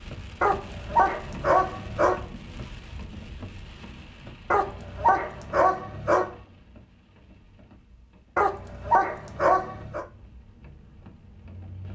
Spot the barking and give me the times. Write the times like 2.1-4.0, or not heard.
0.4-2.2, 4.5-6.3, 8.3-10.1.